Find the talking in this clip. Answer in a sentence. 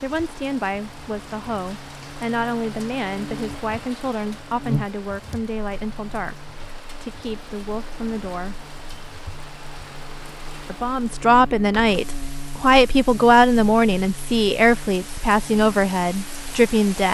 The talking can be heard from 0.0 to 8.6 s and from 10.7 to 17.0 s.